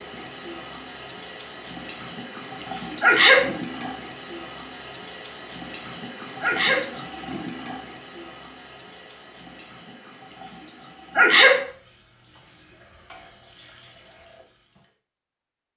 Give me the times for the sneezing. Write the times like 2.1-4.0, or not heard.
3.0-3.5, 6.4-6.9, 11.2-11.7.